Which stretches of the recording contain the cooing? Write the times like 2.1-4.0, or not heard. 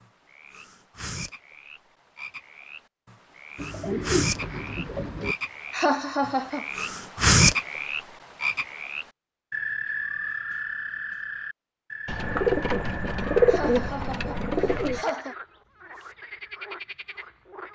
3.5-5.3, 12.1-15.0.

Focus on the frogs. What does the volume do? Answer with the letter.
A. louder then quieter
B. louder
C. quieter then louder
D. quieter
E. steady
A.